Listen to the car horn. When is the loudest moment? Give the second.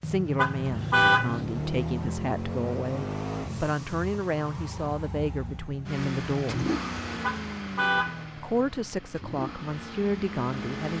1 s.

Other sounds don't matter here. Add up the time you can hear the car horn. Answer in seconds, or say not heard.
2 s.